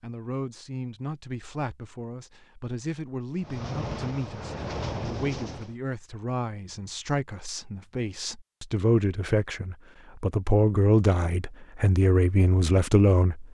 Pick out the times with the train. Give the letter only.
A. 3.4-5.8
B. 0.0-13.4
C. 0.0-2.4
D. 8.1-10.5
A.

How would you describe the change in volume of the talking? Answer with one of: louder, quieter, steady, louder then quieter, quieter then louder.
louder.